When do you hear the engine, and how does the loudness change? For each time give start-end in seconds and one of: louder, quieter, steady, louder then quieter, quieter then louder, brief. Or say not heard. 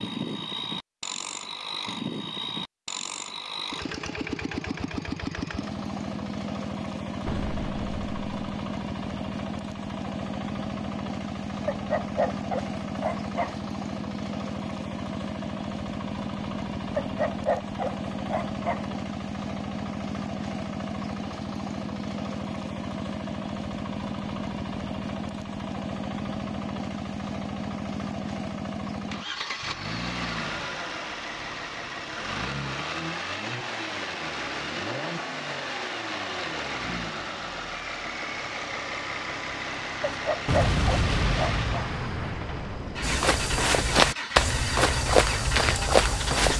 0.0-46.5 steady.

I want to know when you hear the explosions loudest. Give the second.
41 s.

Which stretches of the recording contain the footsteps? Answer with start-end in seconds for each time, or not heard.
43.0-46.5.